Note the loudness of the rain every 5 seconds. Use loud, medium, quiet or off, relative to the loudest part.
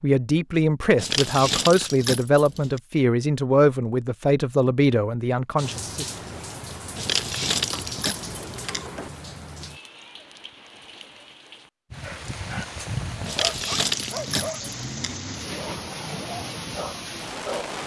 off, loud, loud, loud.